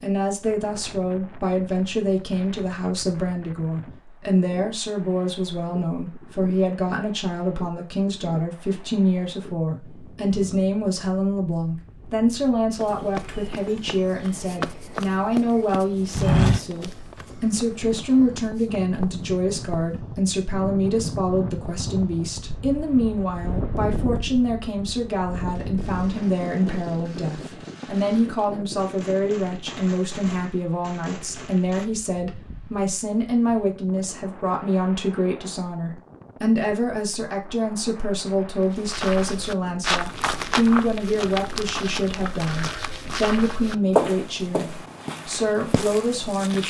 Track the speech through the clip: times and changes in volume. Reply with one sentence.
You can hear the speech from 0.0 to 46.6 s, at a steady volume.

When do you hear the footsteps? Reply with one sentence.
The footsteps can be heard from 12.8 to 19.9 s and from 38.9 to 46.6 s.